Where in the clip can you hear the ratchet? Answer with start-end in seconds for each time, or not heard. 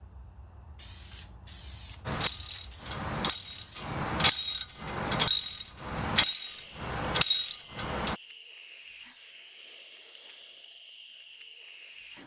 2.0-8.2.